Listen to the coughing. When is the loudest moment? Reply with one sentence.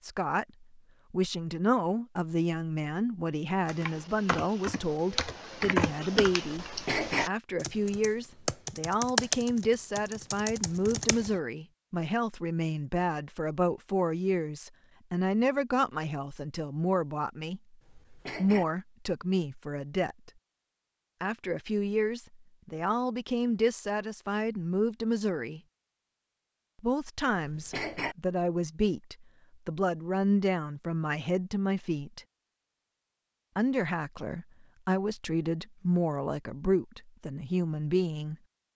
The loudest moment of the coughing is at 7 seconds.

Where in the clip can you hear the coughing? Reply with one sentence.
The coughing can be heard from 6.7 to 7.3 s, from 17.8 to 18.6 s and from 27.4 to 28.1 s.